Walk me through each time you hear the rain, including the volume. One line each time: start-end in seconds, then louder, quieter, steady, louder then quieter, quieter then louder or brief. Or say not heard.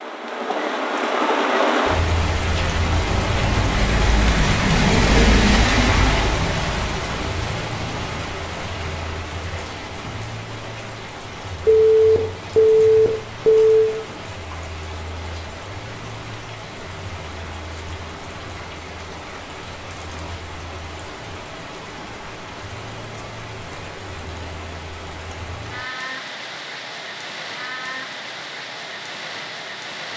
0.0-30.1 quieter.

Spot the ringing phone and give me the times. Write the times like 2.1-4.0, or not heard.
11.7-13.8.